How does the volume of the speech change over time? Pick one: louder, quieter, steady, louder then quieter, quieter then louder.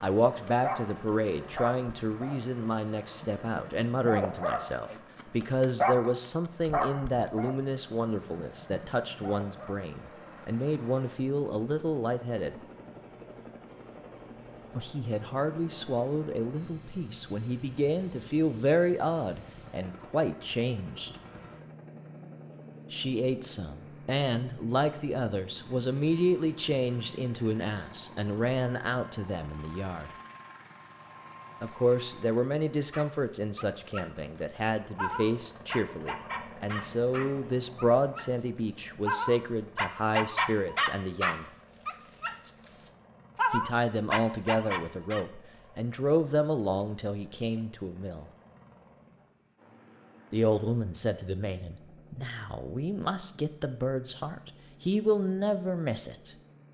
steady.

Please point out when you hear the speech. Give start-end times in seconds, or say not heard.
0.0-12.6, 14.8-21.1, 22.9-30.1, 31.6-41.5, 43.5-48.3, 50.3-56.4.